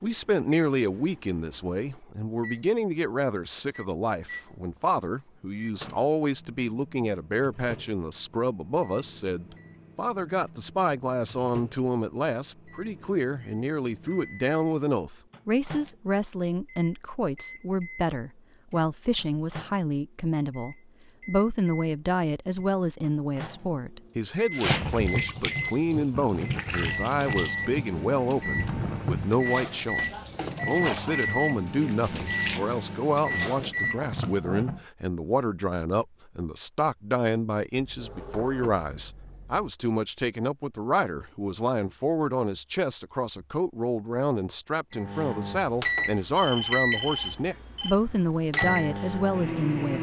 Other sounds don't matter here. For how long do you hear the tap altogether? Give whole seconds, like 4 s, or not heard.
10 s.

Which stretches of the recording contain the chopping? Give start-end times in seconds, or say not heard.
not heard.